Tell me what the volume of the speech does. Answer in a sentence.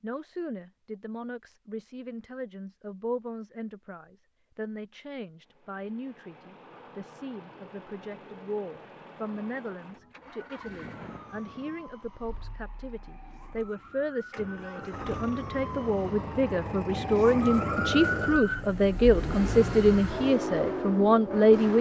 The loudness of the speech goes up.